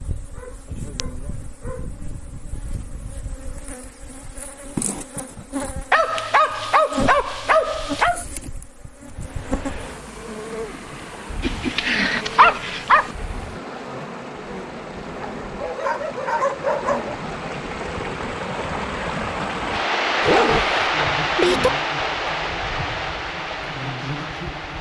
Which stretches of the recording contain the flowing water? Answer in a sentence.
The flowing water can be heard from 9.1 to 24.7 s.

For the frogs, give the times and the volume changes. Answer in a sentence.
The frogs can't be heard in this clip.